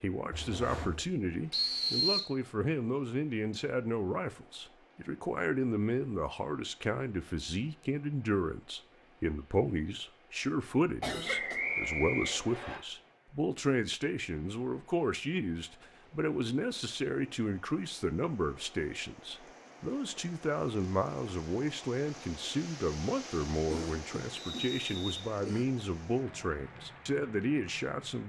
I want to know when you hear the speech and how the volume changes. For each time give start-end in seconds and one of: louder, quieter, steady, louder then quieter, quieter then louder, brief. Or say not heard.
0.0-28.2 steady.